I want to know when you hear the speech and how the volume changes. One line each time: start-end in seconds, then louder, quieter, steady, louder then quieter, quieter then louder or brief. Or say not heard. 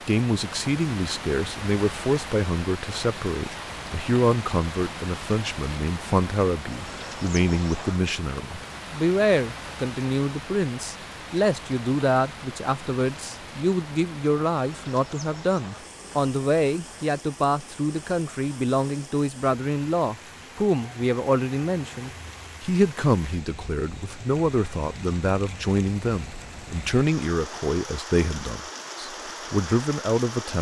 0.1-30.5 steady.